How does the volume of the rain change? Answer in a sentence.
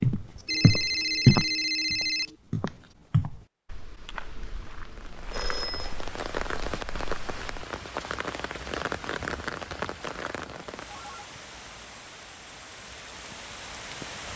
The loudness of the rain goes down.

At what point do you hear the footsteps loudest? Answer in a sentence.
The volume of the footsteps peaks at 1 second.